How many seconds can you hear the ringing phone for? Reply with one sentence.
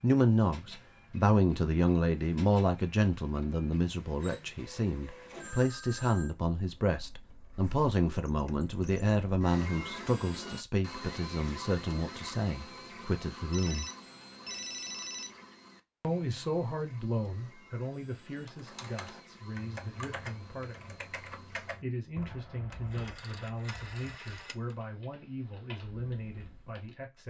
You can hear the ringing phone for 5 seconds altogether.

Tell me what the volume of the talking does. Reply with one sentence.
The loudness of the talking goes down.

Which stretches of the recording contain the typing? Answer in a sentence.
The typing can be heard from 18.4 to 26.9 s.